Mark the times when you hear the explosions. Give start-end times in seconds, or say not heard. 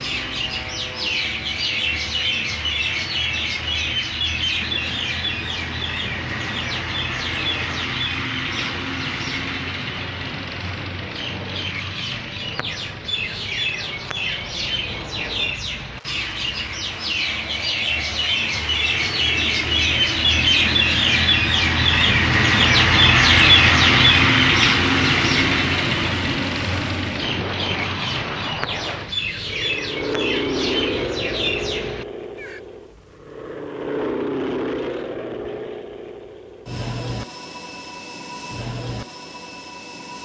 not heard.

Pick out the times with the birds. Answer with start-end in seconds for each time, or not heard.
0.0-32.6.